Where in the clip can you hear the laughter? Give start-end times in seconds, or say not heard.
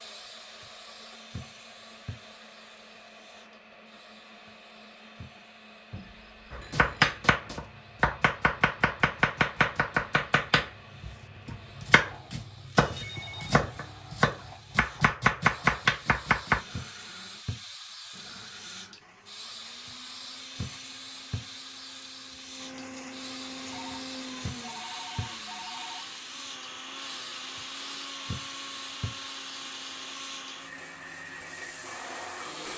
not heard.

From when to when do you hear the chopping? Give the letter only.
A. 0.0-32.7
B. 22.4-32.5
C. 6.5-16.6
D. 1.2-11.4
C.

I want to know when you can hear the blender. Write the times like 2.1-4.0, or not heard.
0.0-32.7.